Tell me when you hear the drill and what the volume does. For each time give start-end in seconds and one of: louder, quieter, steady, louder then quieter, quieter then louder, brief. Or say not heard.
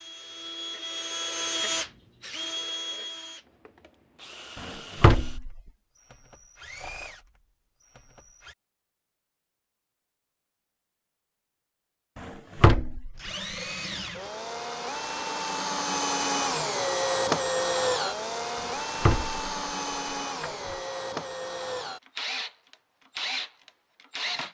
0.0-8.6 quieter then louder
13.2-24.4 louder then quieter.